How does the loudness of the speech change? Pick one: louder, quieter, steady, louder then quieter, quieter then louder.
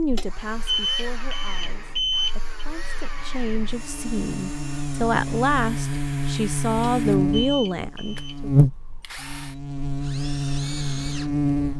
louder.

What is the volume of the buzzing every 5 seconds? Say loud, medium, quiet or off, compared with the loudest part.
quiet, loud, loud.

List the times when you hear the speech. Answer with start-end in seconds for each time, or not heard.
0.0-8.5.